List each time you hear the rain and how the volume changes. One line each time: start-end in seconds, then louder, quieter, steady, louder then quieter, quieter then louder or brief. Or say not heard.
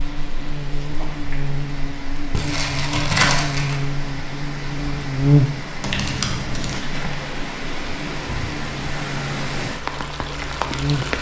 0.0-11.1 louder.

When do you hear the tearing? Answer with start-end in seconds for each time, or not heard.
2.3-3.8, 5.8-6.8.